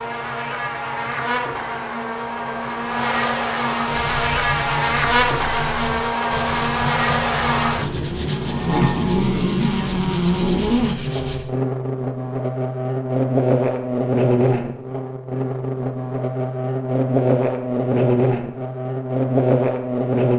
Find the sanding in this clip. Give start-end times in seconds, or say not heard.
3.8-11.4.